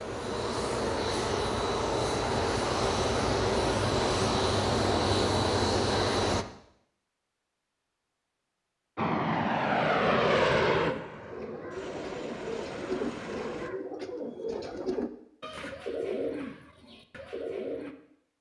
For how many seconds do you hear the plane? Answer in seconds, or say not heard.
11 s.